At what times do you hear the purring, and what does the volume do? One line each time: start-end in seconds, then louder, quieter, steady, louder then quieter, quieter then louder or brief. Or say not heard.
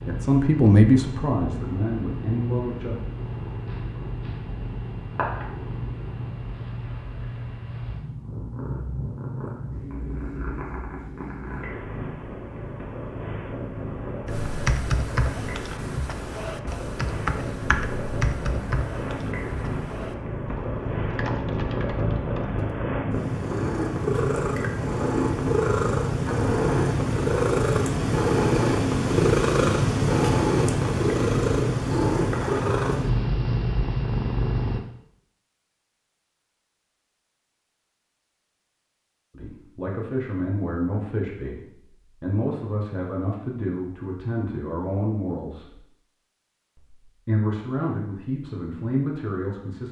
0.0-34.8 louder.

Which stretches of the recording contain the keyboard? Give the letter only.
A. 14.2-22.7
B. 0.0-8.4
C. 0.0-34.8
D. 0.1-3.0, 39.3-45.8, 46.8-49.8
A.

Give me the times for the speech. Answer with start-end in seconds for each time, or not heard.
0.1-3.0, 39.3-45.8, 46.8-49.8.